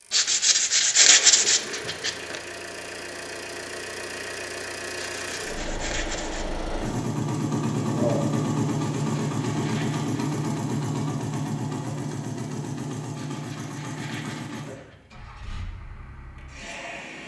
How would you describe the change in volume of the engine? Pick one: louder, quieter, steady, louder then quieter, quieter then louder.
louder then quieter.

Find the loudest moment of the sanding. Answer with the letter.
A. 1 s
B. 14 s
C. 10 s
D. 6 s
A.